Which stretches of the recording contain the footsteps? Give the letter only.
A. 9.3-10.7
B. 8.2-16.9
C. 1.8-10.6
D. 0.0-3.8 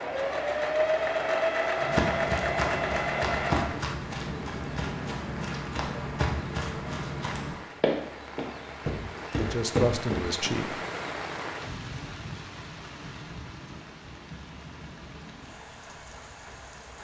C.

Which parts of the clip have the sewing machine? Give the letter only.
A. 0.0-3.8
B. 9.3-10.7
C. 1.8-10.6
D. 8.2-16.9
A.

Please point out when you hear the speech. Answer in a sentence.
You can hear the speech from 9.3 to 10.7 s.